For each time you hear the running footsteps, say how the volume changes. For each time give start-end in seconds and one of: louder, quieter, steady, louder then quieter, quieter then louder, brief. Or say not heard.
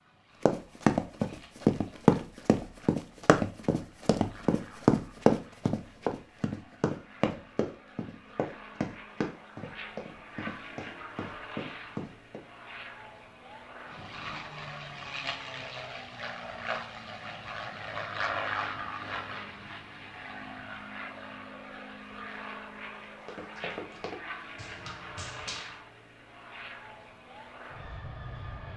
0.5-12.4 quieter
23.2-25.8 brief.